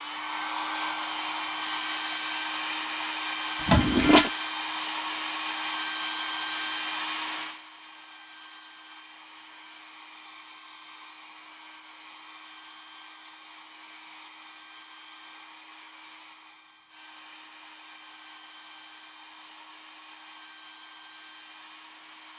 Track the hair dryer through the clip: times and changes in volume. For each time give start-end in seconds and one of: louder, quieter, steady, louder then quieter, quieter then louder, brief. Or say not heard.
0.0-22.3 quieter.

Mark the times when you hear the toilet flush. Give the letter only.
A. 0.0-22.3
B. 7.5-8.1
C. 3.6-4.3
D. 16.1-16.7
C.